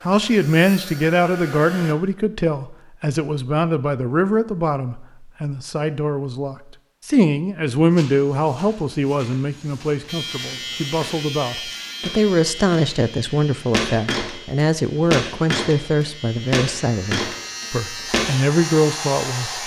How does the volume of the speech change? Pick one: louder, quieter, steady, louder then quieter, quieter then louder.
steady.